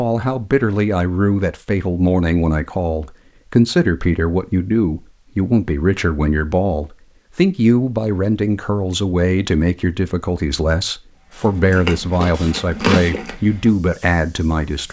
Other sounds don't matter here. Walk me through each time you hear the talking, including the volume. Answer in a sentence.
The talking can be heard from 0.0 to 14.8 s, at a steady volume.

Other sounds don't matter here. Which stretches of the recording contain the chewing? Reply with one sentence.
The chewing can be heard from 11.6 to 13.3 s.